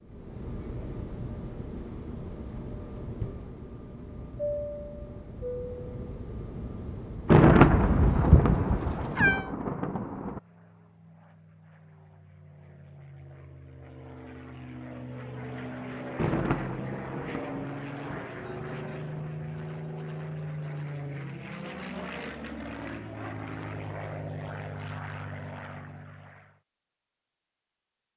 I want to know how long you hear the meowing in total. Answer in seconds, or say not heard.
2 s.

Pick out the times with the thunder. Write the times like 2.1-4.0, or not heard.
7.2-10.4, 16.1-19.3.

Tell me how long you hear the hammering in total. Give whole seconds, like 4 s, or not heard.
not heard.